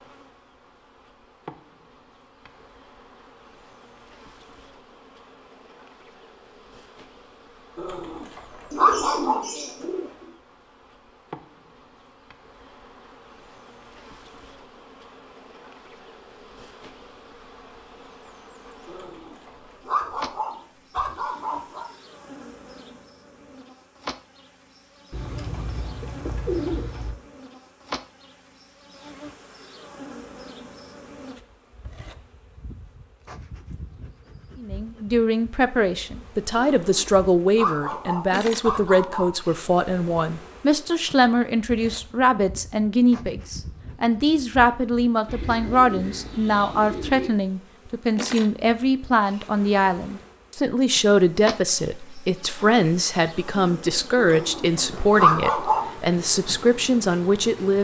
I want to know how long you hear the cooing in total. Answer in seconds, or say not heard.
6 s.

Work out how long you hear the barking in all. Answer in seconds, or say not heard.
9 s.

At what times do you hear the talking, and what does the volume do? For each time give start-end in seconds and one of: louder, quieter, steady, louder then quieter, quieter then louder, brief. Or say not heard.
34.5-57.7 steady.